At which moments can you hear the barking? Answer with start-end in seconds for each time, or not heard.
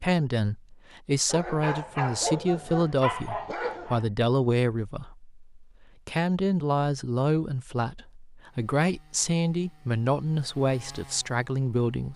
1.2-4.0.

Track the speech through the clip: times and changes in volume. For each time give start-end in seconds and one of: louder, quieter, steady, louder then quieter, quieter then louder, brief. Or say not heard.
0.0-12.1 steady.